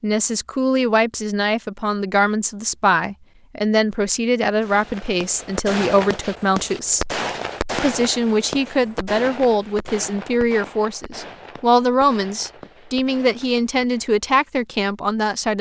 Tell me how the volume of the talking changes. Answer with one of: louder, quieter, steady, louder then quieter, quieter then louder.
steady.